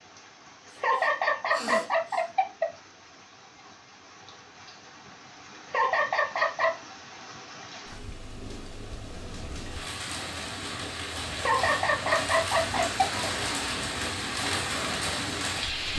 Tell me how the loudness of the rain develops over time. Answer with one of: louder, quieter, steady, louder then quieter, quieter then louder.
louder.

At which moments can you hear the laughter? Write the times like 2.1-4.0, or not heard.
0.8-2.6, 5.7-6.8, 11.4-13.2.